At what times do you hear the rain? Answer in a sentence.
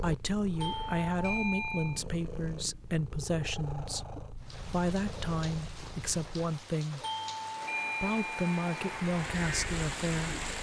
The rain can be heard from 4.3 to 10.5 s.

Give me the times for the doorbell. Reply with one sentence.
The doorbell can be heard from 0.6 to 2.0 s and from 7.0 to 9.0 s.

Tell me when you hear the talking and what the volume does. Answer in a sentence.
The talking can be heard from 0.0 to 7.0 s, at a steady volume; and briefly from 8.0 to 10.4 s.